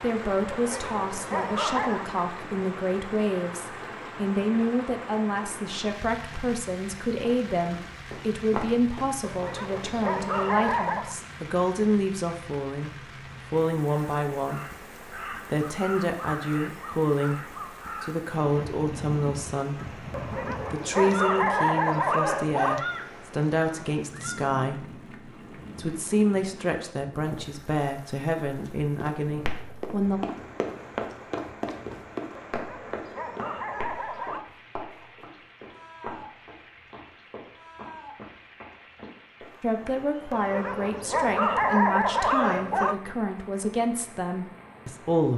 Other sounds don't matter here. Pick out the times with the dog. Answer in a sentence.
You can hear the dog from 0.5 to 2.0 s, from 9.2 to 11.2 s, from 20.1 to 22.9 s, from 32.4 to 34.5 s and from 40.3 to 43.0 s.